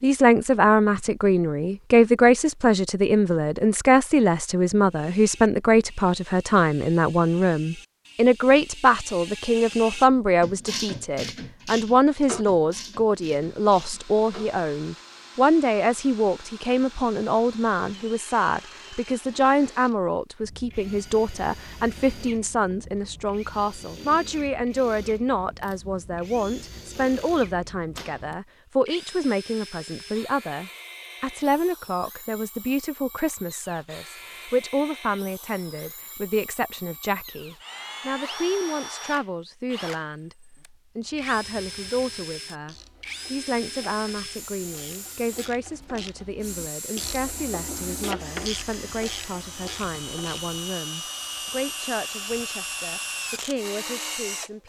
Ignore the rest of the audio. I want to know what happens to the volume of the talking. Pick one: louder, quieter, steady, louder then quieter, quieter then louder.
quieter.